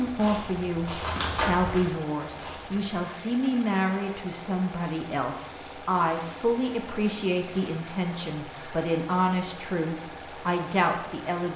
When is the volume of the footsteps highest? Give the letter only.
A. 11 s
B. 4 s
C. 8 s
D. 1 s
D.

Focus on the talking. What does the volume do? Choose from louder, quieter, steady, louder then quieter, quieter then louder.
steady.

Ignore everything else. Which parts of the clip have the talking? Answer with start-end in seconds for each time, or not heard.
0.0-11.5.